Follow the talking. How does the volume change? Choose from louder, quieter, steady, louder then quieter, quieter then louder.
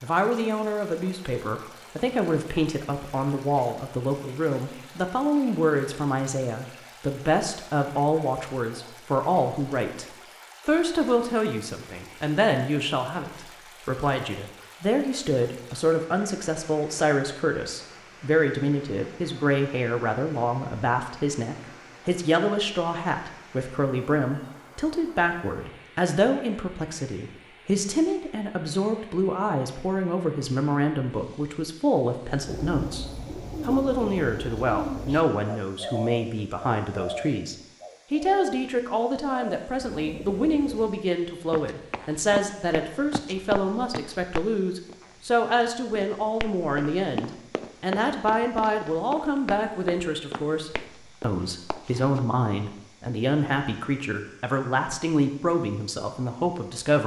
steady.